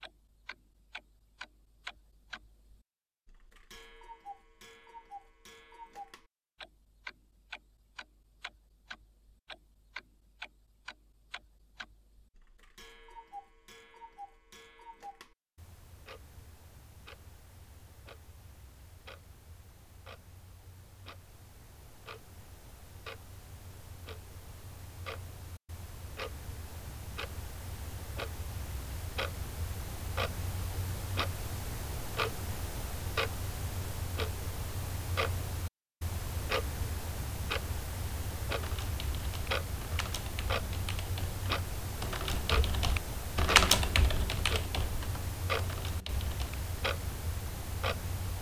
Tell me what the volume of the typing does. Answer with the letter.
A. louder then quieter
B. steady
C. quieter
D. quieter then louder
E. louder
A.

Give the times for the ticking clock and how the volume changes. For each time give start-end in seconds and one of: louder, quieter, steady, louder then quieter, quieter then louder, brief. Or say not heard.
0.0-48.3 louder.